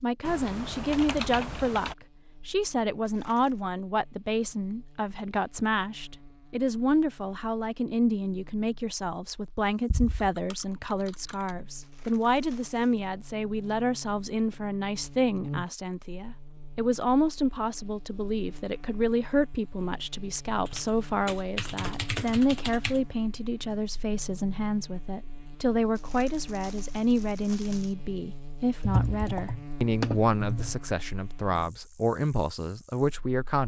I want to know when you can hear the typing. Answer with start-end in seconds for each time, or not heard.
0.2-1.9, 9.9-11.5, 20.6-23.0, 28.8-30.8.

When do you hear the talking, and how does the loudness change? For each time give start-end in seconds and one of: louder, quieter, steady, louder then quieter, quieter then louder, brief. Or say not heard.
0.0-33.6 steady.